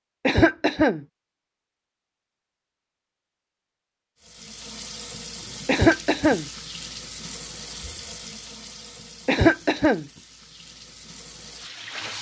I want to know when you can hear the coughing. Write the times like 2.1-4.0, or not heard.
0.2-1.0, 5.7-6.5, 9.2-10.1.